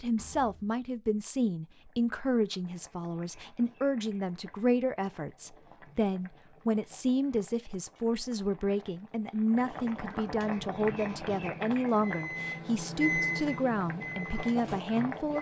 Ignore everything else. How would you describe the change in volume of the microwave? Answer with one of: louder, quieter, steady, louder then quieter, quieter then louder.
louder then quieter.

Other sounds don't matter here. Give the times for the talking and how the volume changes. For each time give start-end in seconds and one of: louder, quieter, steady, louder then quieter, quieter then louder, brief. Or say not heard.
0.0-15.3 steady.